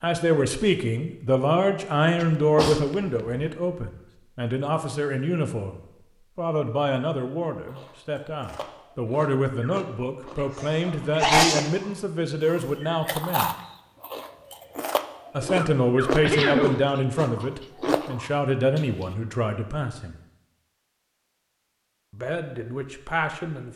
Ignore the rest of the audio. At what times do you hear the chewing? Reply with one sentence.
You can hear the chewing from 7.7 to 19.1 s.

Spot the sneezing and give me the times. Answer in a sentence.
The sneezing can be heard from 2.1 to 3.5 s, from 10.4 to 11.7 s and from 16.1 to 16.8 s.